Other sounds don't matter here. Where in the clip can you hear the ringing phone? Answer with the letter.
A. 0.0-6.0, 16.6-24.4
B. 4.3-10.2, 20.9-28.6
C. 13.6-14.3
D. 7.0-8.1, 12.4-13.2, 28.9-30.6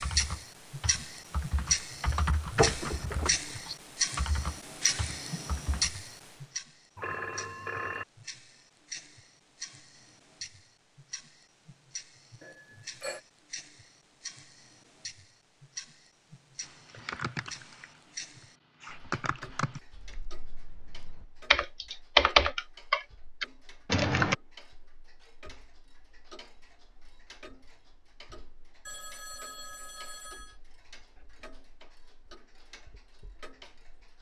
D.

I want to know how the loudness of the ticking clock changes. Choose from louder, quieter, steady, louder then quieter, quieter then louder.
quieter.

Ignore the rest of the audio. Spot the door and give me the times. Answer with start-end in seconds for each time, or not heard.
2.5-3.3.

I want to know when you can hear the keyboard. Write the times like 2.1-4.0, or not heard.
0.0-6.0, 16.6-24.4.